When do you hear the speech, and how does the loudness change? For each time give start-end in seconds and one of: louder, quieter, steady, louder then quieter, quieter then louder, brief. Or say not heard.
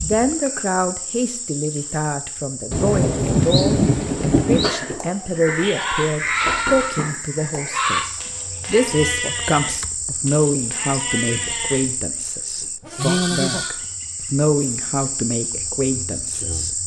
0.0-16.8 steady.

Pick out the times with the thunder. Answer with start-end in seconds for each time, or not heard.
2.7-4.7.